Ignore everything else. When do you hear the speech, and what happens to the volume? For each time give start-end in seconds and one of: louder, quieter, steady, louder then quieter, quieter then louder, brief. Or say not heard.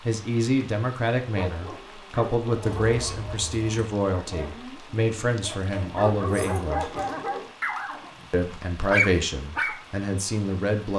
0.1-7.0 steady
8.3-10.9 brief.